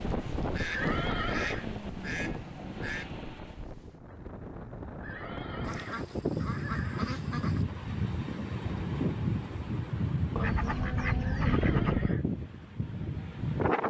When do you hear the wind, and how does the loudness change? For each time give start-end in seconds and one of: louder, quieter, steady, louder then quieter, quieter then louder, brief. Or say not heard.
0.0-13.8 quieter then louder.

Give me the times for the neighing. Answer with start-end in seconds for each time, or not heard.
0.7-1.6, 5.0-7.0, 11.2-12.3.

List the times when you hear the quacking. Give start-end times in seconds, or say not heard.
0.5-3.1, 5.6-7.7, 10.3-12.2.